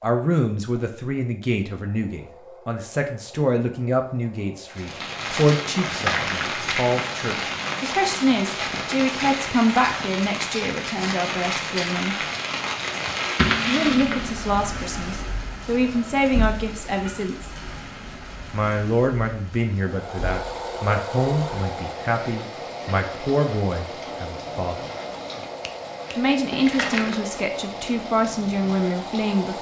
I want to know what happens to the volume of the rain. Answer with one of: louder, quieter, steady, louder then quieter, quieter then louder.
quieter.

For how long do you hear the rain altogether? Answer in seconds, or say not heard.
25 s.